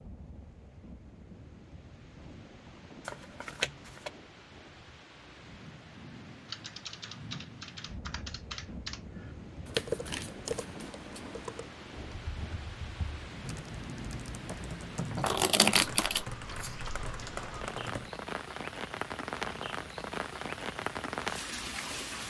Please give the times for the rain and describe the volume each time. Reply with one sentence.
The rain can be heard from 0.0 to 22.2 s, getting louder.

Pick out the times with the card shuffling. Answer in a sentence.
You can hear the card shuffling from 3.0 to 4.1 s, from 9.7 to 11.6 s and from 15.1 to 16.7 s.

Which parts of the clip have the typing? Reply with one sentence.
The typing can be heard from 6.5 to 18.1 s.